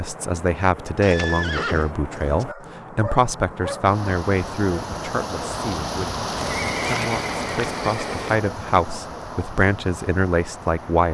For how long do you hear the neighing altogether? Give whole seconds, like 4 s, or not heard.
3 s.